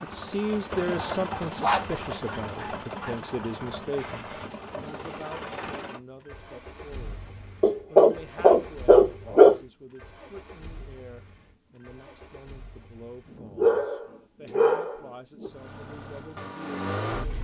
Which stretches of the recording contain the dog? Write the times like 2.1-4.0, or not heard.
1.6-3.1, 7.6-9.6, 13.6-15.5.